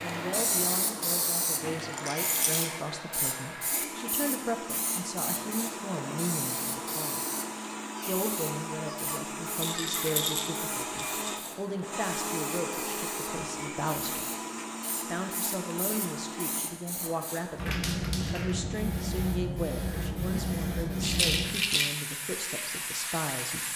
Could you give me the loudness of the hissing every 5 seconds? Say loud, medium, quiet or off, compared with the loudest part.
loud, medium, medium, loud, loud.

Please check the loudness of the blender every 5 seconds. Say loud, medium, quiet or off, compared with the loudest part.
loud, loud, loud, loud, off.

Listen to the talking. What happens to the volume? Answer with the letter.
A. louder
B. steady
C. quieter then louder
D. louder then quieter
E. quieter
B.